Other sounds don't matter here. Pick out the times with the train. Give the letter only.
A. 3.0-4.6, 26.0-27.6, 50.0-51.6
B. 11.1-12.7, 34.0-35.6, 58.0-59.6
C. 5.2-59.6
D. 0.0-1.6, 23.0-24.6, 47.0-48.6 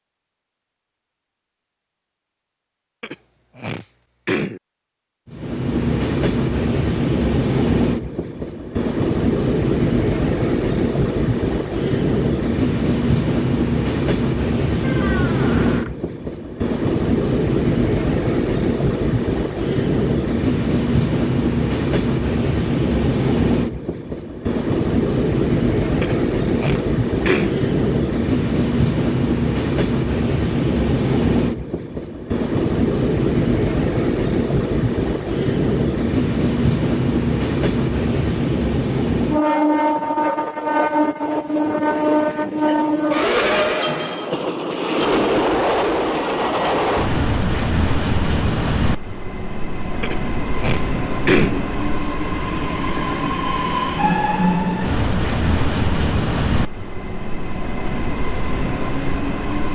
C.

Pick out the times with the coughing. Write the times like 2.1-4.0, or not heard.
3.0-4.6, 26.0-27.6, 50.0-51.6.